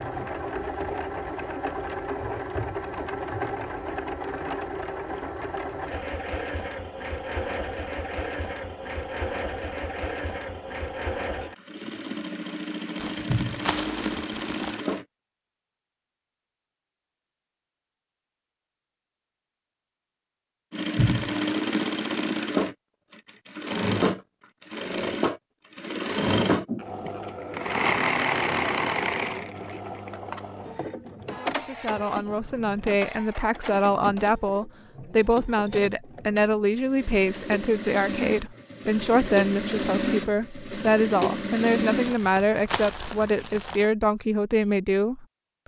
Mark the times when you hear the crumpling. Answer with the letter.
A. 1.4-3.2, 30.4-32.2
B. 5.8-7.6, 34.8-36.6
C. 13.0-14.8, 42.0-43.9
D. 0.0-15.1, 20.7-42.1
C.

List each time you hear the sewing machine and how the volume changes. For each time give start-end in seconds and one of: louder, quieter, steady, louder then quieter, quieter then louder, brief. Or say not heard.
0.0-15.1 steady
20.7-42.1 quieter then louder.